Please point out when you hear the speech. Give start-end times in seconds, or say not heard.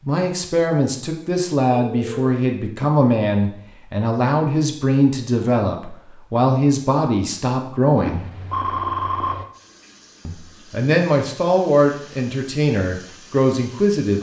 0.1-8.2, 10.2-14.1.